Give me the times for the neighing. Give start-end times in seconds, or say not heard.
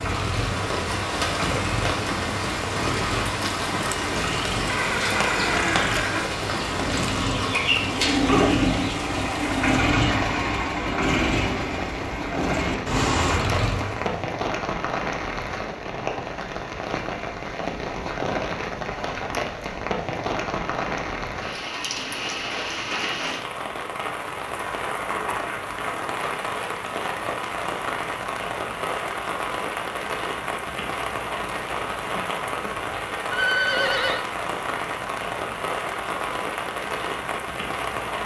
4.6-6.3, 33.3-34.2.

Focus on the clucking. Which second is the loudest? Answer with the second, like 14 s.
8 s.